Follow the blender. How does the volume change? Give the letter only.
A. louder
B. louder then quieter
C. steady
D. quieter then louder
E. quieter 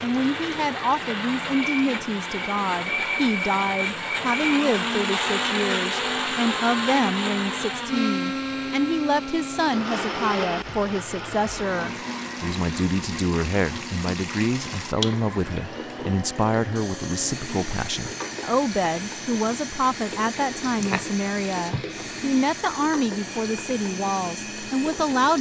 E.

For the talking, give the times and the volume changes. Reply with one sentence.
You can hear the talking from 0.0 to 25.3 s, at a steady volume.